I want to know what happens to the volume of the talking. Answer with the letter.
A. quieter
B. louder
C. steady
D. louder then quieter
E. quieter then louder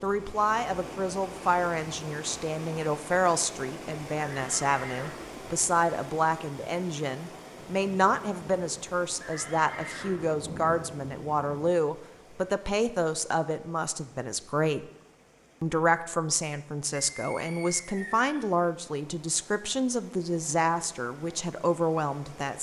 C.